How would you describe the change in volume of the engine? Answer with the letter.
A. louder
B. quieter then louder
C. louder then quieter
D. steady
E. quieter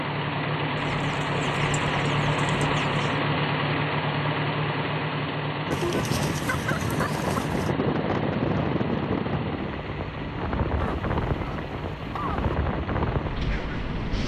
E.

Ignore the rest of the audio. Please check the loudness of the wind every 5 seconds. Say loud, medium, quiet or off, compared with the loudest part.
off, loud, loud.